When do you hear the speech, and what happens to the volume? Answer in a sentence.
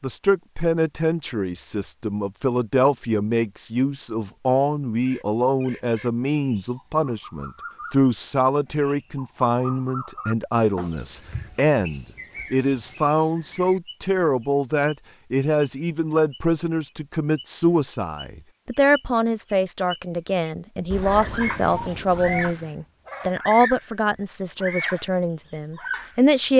The speech can be heard from 0.0 to 26.5 s, at a steady volume.